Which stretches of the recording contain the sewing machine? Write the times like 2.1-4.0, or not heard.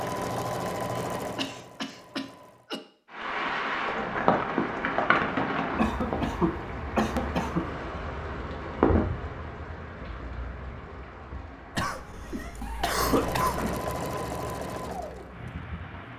0.0-2.7, 12.8-16.1.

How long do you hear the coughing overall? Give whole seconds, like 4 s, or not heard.
6 s.